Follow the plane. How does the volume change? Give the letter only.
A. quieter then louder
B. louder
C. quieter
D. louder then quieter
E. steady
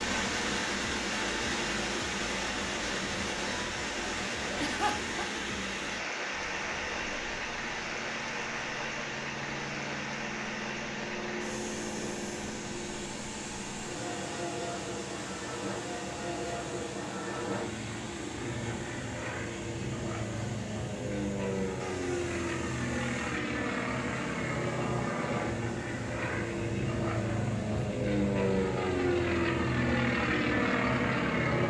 B.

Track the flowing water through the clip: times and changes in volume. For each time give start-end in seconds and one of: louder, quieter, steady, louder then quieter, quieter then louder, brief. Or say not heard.
0.0-31.6 quieter.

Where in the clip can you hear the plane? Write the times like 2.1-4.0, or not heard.
6.3-31.6.